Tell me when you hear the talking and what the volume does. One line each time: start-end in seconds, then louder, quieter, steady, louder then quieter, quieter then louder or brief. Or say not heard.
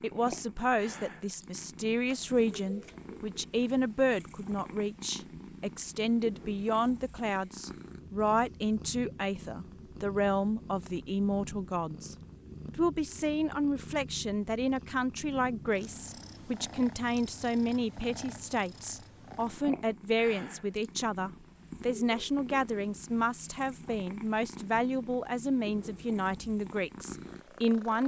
0.0-28.0 steady.